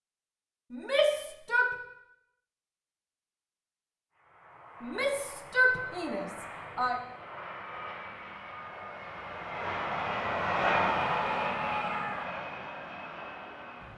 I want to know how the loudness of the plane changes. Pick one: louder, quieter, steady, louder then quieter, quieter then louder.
louder then quieter.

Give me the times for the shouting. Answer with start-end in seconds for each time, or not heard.
0.7-1.7, 4.8-7.0, 10.6-12.2.